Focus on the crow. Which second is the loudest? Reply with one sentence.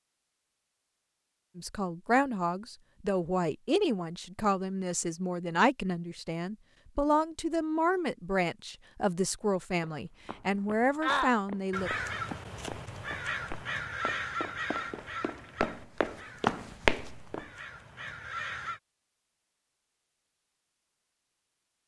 The volume of the crow peaks at 11 seconds.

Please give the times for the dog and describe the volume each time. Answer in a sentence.
The dog can't be heard in this clip.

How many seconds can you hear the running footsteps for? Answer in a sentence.
The running footsteps can be heard for 8 seconds in total.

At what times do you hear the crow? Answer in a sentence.
The crow can be heard from 11.0 to 18.8 s.